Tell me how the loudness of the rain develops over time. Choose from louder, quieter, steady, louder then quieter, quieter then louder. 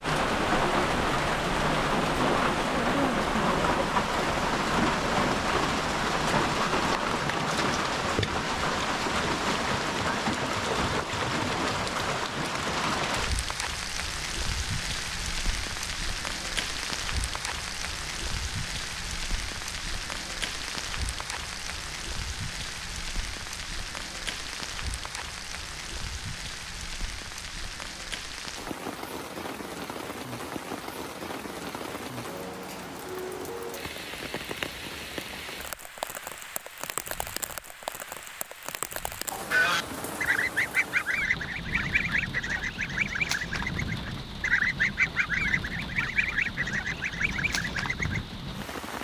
quieter.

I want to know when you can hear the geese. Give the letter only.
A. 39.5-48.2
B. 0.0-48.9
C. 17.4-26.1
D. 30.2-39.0
A.